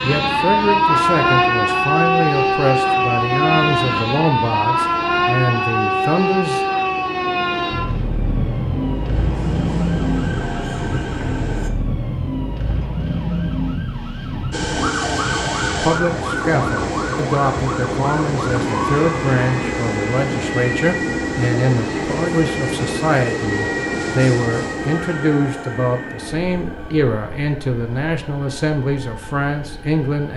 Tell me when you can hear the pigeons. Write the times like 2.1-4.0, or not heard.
not heard.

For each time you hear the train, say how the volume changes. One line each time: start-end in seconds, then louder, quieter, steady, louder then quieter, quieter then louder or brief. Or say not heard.
7.0-11.7 louder
14.5-30.3 quieter.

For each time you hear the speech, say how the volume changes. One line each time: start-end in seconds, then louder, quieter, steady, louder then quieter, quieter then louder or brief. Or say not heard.
0.0-6.7 steady
15.8-30.3 steady.